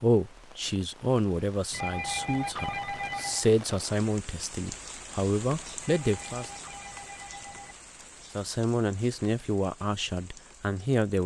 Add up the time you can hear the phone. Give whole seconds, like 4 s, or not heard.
4 s.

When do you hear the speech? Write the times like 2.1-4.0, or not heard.
0.0-6.5, 8.3-11.2.